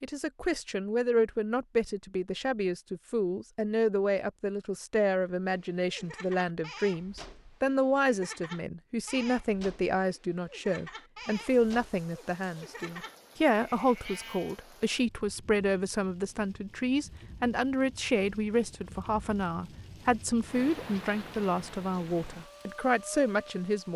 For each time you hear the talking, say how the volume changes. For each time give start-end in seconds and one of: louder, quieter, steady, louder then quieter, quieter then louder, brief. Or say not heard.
0.0-23.9 steady.